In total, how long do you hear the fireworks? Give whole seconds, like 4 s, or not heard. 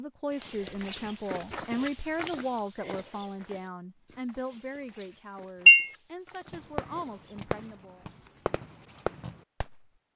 4 s.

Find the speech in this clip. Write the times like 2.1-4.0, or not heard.
0.0-8.1.